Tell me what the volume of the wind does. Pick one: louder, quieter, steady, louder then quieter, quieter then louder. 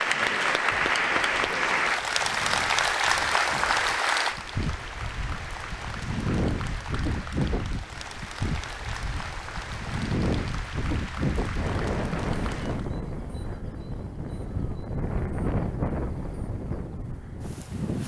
louder.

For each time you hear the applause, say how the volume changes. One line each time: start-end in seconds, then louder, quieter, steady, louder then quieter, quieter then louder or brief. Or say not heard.
0.0-12.9 quieter.